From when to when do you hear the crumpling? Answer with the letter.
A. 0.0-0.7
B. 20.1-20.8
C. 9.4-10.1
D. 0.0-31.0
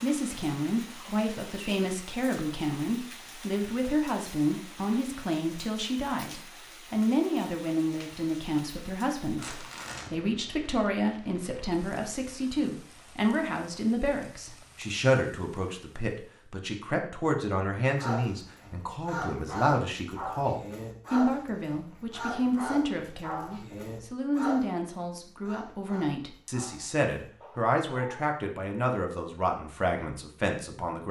C.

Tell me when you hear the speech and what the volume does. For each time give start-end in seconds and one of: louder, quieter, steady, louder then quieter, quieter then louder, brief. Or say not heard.
0.0-31.0 steady.